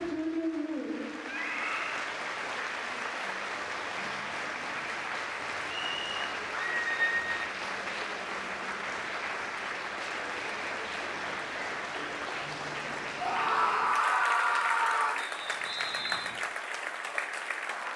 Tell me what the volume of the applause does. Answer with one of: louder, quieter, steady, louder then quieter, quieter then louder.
steady.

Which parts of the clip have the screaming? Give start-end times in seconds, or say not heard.
1.2-2.1, 6.8-7.2, 13.2-15.2.